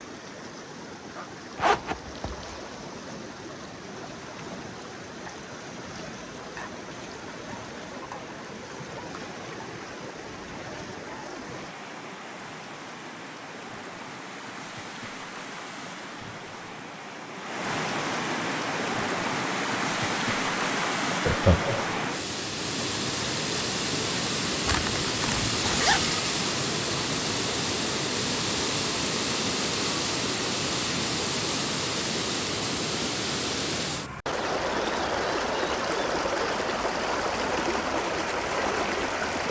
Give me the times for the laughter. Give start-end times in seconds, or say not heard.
21.2-21.9.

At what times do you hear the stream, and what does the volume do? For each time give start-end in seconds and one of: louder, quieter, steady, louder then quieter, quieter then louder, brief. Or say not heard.
0.0-39.4 louder.